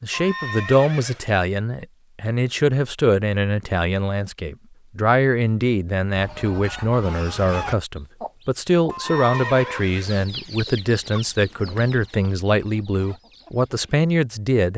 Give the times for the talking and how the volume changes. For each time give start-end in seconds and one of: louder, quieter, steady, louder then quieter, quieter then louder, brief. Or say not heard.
0.0-14.7 steady.